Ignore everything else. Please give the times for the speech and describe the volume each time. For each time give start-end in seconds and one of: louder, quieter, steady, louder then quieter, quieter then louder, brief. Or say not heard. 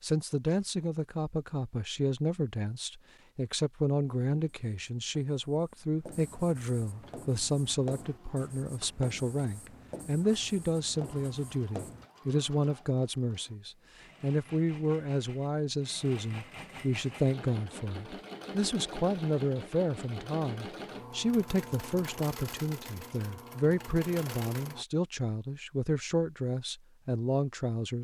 0.0-27.9 steady.